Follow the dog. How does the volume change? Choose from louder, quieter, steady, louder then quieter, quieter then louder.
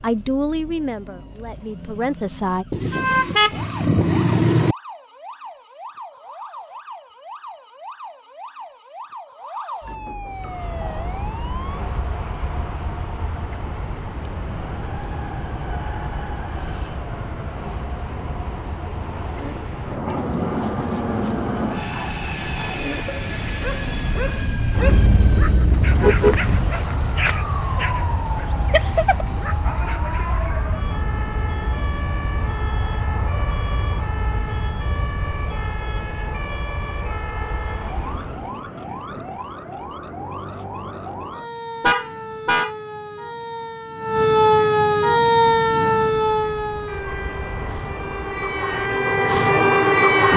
louder.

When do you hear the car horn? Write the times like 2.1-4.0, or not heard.
2.7-4.8, 24.8-26.7, 41.8-42.7.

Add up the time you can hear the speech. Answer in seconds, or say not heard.
3 s.